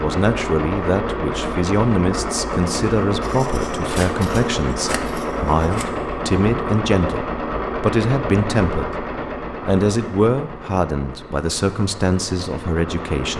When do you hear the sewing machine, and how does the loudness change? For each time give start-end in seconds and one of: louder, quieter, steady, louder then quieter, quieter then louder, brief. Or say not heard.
0.0-13.3 quieter.